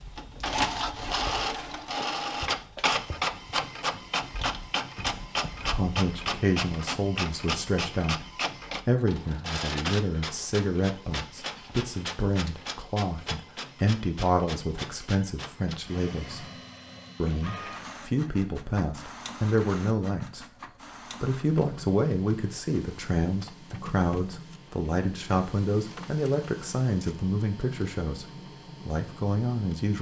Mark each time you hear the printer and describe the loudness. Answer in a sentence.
The printer can be heard from 0.0 to 29.9 s, getting quieter.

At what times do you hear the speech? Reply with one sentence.
You can hear the speech from 5.6 to 16.5 s and from 17.2 to 29.9 s.